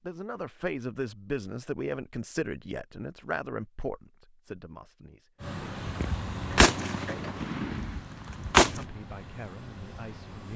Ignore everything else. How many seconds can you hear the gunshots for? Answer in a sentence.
The gunshots can be heard for 3 seconds in total.